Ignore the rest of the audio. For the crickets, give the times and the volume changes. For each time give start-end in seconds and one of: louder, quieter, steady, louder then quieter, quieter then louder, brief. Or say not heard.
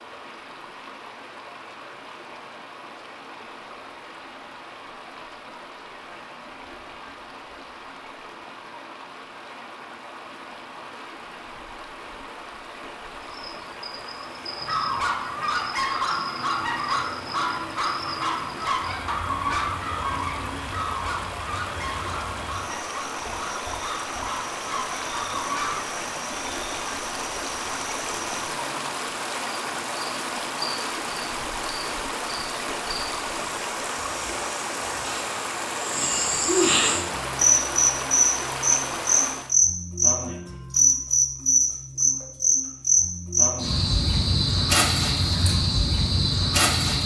13.2-47.0 louder.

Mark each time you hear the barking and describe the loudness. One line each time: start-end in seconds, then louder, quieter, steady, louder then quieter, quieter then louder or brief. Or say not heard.
14.6-25.9 quieter.